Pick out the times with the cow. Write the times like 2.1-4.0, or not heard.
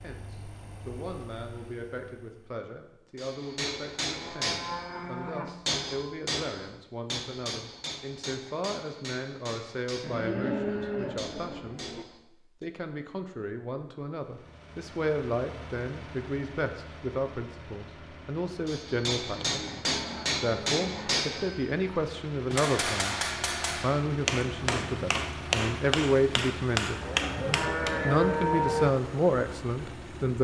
4.1-5.5, 10.0-12.1, 19.3-21.2, 27.0-28.9.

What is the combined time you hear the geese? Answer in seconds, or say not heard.
not heard.